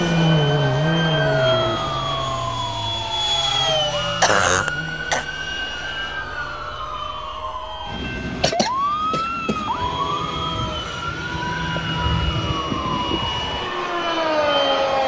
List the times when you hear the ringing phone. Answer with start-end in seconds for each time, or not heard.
not heard.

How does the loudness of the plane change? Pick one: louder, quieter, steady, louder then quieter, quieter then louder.
quieter then louder.